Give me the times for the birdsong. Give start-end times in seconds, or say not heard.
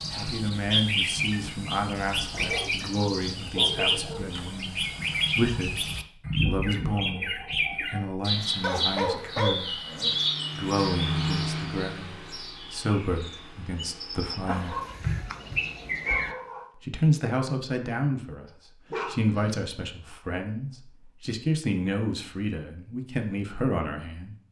0.0-16.4.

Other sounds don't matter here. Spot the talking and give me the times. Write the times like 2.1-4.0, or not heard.
0.1-9.8, 10.5-14.8, 16.8-24.4.